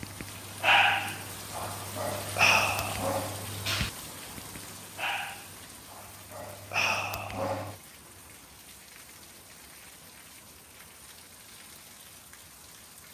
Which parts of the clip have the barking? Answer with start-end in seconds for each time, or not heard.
0.0-7.8.